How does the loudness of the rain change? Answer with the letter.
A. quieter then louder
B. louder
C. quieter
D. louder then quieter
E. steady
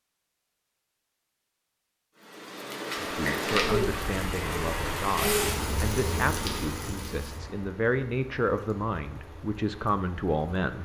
C.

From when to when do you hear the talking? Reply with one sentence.
The talking can be heard from 3.0 to 10.8 s.